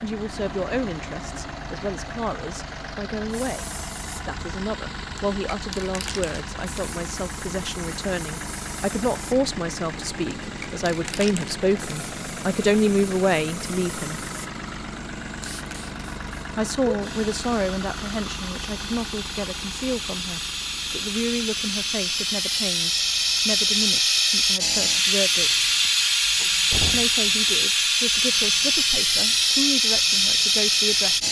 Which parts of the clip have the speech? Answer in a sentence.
The speech can be heard from 0.0 to 14.2 s, from 16.6 to 25.6 s and from 26.9 to 31.2 s.